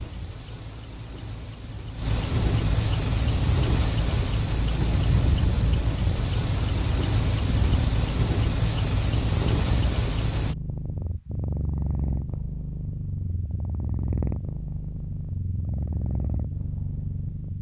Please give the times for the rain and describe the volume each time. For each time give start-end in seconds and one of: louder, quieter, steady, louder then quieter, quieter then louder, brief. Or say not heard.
0.0-10.6 louder.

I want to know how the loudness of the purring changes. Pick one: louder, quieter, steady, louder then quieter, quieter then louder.
steady.